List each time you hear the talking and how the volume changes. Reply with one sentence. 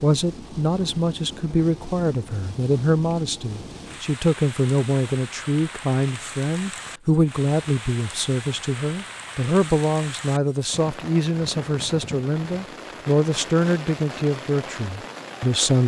You can hear the talking from 0.0 to 15.8 s, at a steady volume.